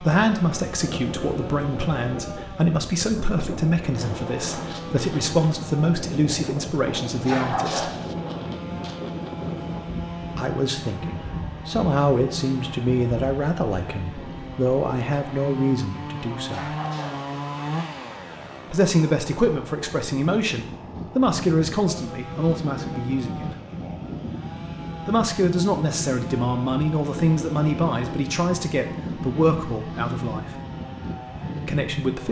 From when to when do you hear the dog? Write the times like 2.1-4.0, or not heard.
7.0-8.2, 16.4-17.3.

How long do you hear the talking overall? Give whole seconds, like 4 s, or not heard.
25 s.